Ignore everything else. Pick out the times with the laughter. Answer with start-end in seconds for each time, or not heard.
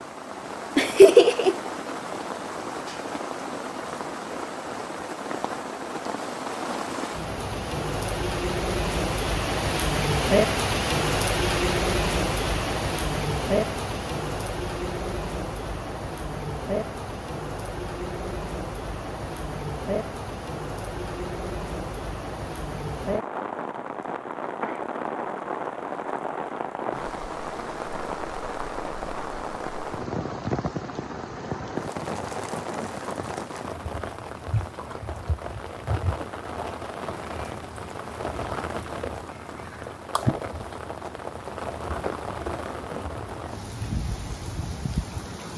0.8-1.6.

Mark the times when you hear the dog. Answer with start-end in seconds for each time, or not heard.
not heard.